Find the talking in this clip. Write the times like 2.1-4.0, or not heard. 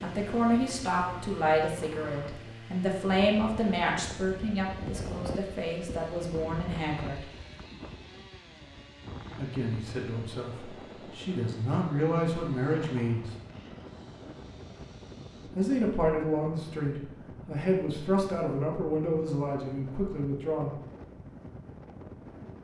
0.0-7.2, 9.3-13.3, 15.6-20.8.